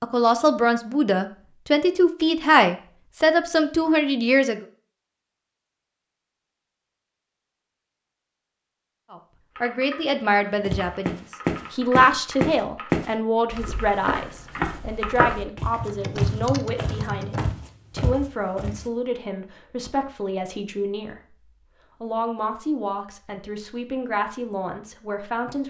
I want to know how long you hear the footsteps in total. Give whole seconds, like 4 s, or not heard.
8 s.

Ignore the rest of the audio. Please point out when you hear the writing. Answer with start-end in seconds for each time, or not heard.
not heard.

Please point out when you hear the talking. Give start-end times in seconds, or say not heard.
0.0-4.6, 9.1-21.4, 22.0-25.6.